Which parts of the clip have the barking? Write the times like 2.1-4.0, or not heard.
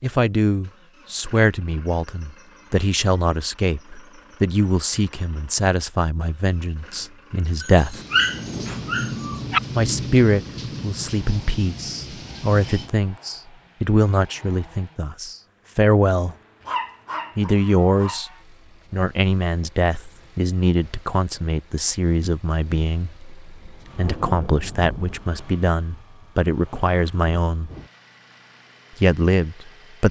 7.6-9.6, 16.6-18.2.